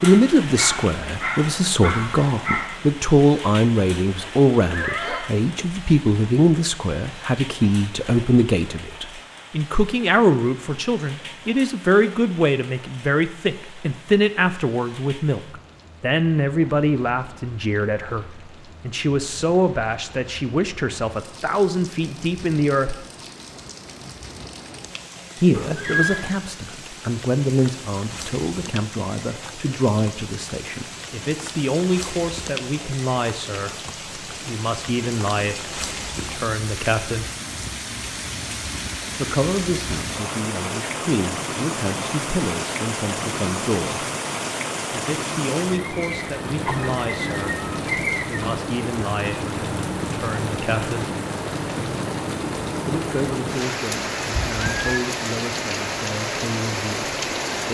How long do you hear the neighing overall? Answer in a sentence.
The neighing can be heard for 2 seconds in total.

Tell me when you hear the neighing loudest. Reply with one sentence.
The loudest moment of the neighing is at 26 seconds.